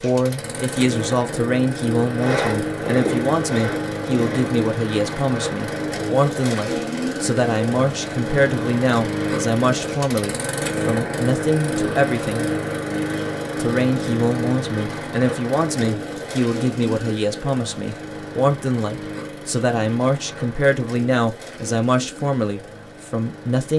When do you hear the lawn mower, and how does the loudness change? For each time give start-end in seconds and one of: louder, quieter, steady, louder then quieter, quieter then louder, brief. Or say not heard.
0.0-23.7 quieter.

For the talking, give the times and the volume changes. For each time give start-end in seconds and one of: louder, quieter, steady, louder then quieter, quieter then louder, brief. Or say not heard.
0.0-12.4 steady
13.6-23.7 steady.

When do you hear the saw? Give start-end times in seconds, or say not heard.
2.0-4.6.